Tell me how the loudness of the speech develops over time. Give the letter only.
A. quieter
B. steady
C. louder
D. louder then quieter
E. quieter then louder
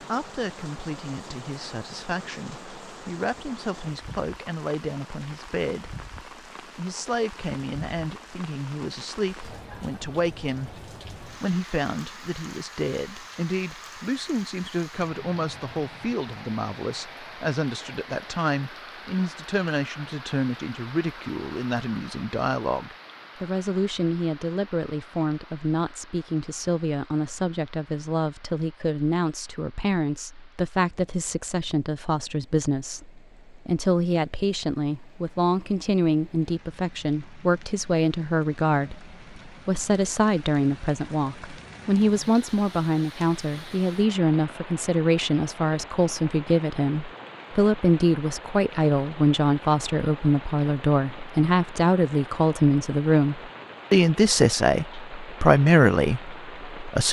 C.